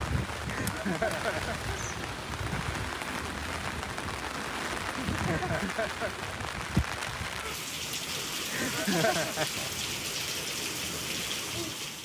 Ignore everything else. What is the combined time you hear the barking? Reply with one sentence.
The barking can't be heard in this clip.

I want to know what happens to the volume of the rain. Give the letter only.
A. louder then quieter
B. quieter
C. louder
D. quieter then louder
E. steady
E.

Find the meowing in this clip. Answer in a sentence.
The meowing can be heard from 0.7 to 1.6 s, from 4.8 to 5.7 s and from 8.6 to 9.7 s.